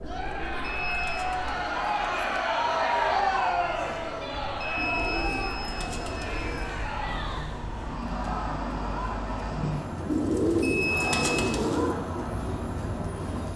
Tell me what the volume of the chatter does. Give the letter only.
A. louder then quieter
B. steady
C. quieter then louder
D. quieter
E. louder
D.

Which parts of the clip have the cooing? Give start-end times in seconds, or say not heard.
0.0-2.5, 4.8-6.8, 10.1-11.9.